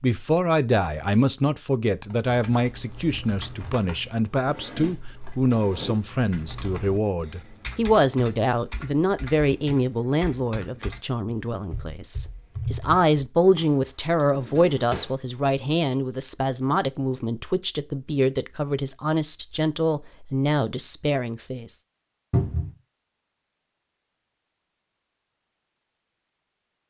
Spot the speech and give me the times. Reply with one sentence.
The speech can be heard from 0.0 to 21.8 s.